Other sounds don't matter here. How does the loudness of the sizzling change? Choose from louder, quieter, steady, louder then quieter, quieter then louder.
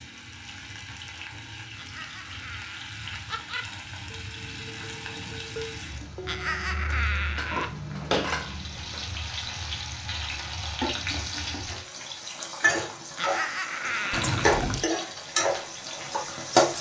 louder.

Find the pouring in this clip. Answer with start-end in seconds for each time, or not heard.
14.1-14.8.